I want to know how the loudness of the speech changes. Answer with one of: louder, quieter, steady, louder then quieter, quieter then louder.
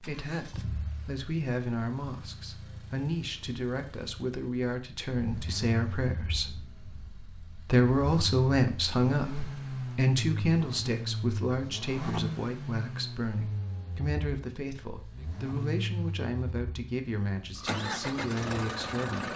louder then quieter.